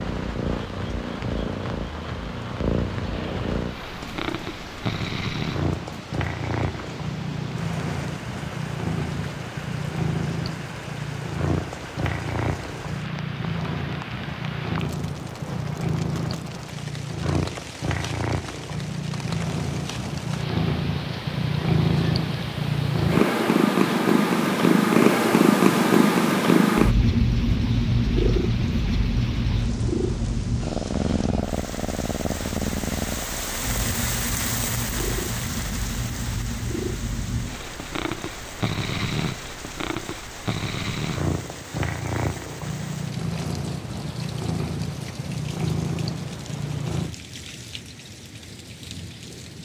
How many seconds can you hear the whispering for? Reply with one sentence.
The whispering can't be heard in this clip.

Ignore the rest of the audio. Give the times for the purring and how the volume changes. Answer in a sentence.
You can hear the purring from 0.0 to 47.1 s, getting louder then quieter.